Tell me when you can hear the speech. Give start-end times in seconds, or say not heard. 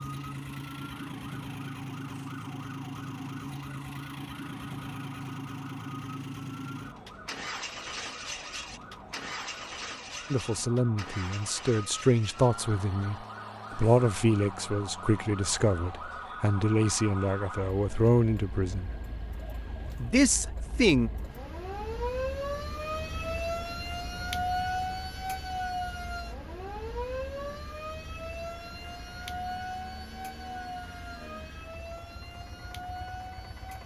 10.3-18.9, 20.0-21.1.